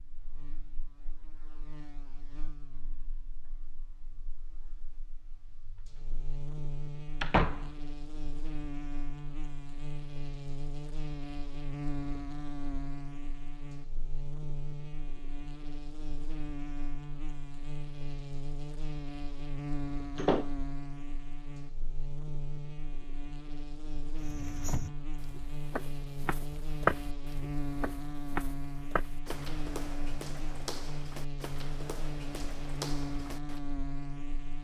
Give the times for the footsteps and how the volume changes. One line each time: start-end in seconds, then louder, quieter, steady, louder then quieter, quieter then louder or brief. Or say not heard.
24.1-33.6 louder then quieter.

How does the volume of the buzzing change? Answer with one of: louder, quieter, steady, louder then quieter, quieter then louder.
louder.